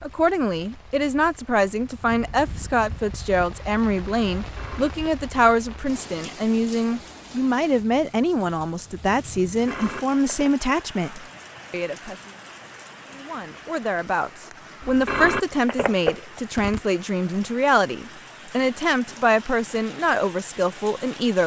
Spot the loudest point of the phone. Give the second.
15 s.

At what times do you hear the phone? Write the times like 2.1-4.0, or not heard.
4.3-4.9, 9.4-10.5, 14.8-16.8.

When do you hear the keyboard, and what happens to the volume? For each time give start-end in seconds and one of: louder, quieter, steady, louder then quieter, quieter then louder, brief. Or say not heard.
not heard.